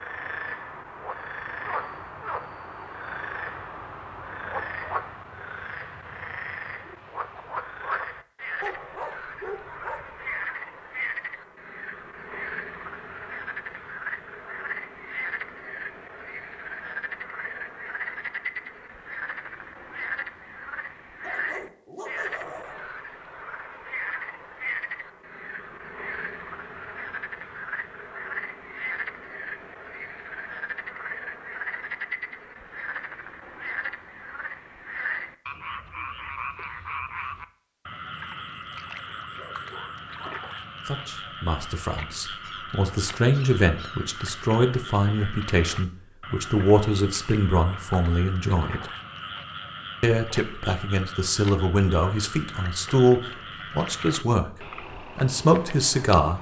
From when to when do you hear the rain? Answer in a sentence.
You can't hear the rain here.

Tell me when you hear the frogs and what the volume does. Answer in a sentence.
The frogs can be heard from 0.0 to 56.3 s, at a steady volume.